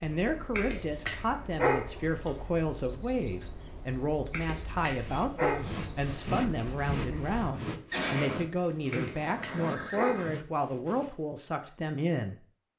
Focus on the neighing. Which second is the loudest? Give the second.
8 s.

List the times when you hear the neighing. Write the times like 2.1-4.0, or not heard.
7.9-10.3.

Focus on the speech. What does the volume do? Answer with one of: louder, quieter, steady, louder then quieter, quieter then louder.
steady.